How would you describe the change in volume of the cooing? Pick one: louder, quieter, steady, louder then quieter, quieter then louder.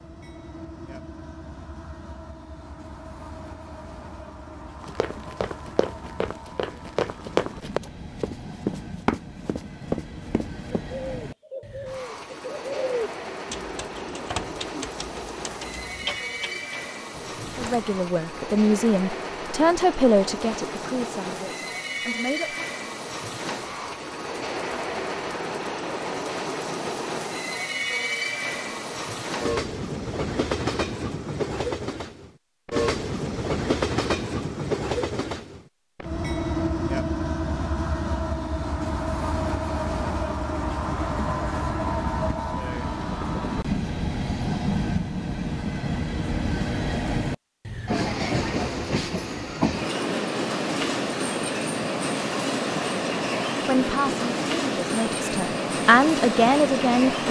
quieter.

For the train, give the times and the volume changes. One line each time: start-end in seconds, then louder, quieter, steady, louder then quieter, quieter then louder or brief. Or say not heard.
0.0-57.2 louder.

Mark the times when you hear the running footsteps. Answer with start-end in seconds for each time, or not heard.
4.8-10.8.